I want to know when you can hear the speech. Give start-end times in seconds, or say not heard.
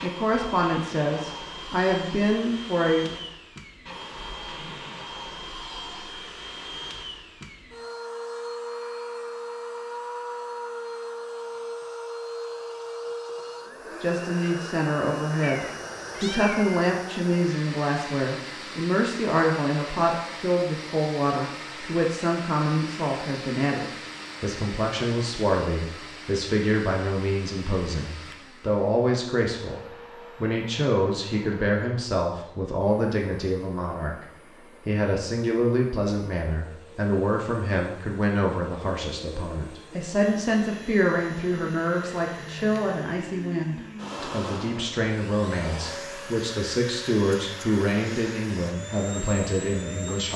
0.0-3.2, 14.0-50.3.